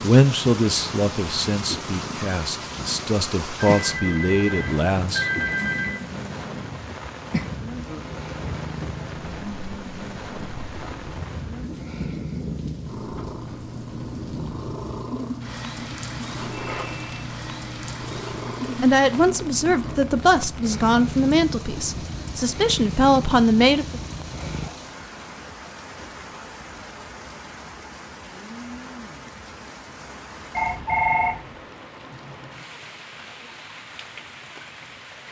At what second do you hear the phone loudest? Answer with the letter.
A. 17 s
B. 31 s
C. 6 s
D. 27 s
B.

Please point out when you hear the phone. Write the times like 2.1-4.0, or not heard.
3.5-6.0, 16.5-17.1, 30.6-31.4.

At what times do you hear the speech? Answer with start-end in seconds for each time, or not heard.
0.0-5.3, 18.8-24.0.